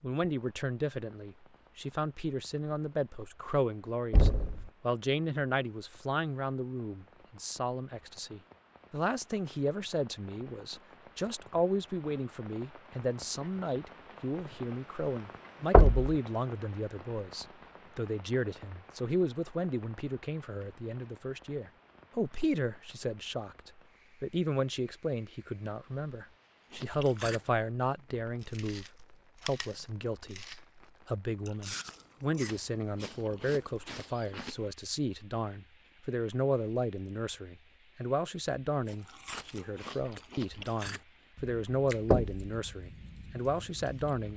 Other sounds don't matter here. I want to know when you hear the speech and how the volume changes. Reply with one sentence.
You can hear the speech from 0.0 to 44.3 s, at a steady volume.